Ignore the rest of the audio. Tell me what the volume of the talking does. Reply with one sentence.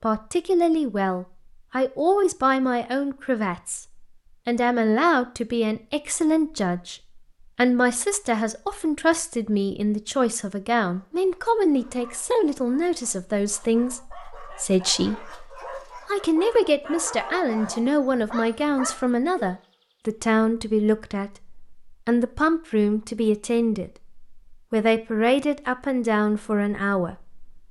The loudness of the talking stays about the same.